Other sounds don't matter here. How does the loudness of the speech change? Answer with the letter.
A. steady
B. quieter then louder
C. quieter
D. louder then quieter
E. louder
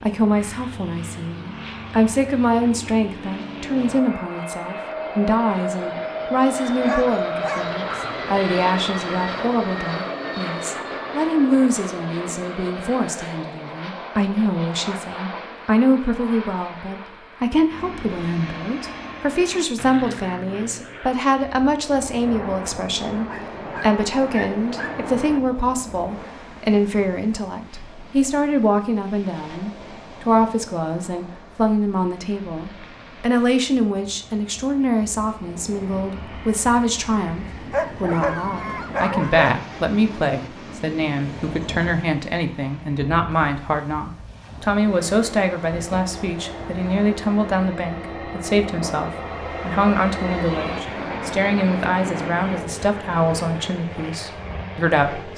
A.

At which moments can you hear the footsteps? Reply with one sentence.
You can't hear the footsteps here.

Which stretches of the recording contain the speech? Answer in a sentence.
The speech can be heard from 0.0 to 55.3 s.